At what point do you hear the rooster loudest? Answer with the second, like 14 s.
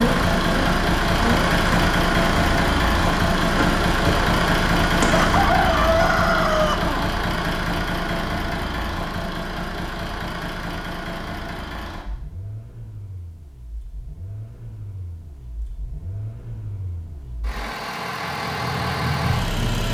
6 s.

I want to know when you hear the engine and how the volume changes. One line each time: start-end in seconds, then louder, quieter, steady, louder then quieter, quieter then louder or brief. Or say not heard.
0.0-19.8 quieter then louder.